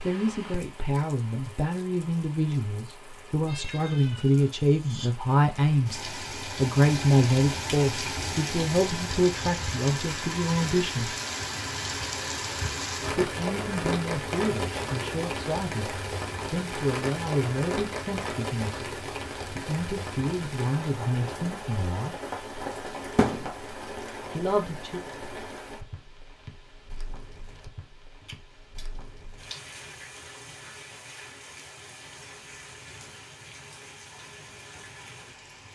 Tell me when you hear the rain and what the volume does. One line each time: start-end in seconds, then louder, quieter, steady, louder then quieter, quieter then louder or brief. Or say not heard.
0.0-35.6 louder then quieter.